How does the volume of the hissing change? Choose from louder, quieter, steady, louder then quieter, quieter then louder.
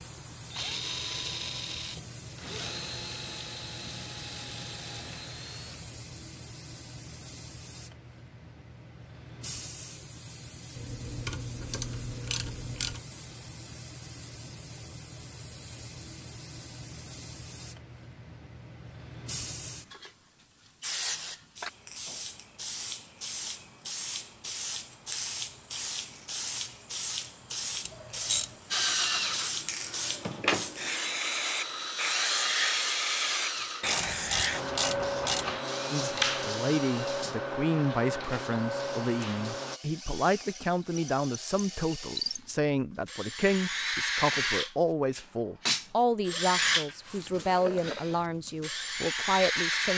louder.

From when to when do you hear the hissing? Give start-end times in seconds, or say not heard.
0.0-39.8.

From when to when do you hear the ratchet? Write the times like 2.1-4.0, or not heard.
10.8-13.0, 27.9-28.5, 33.8-35.6.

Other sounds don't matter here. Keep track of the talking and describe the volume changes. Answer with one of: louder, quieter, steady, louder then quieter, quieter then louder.
steady.